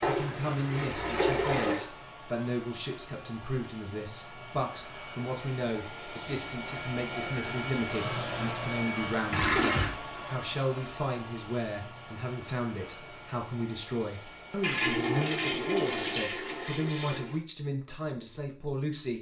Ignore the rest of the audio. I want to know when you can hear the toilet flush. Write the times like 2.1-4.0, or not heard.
0.0-1.9, 9.3-9.9, 14.6-17.4.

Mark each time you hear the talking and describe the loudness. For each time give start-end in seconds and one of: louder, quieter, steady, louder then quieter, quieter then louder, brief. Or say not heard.
0.1-19.1 steady.